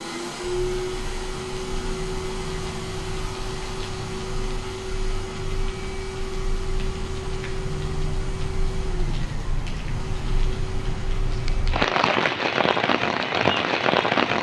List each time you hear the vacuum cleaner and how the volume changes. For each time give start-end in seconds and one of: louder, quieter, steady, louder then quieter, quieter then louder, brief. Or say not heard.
0.0-11.8 quieter.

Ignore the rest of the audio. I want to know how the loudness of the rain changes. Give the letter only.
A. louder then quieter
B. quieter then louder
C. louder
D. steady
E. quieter
C.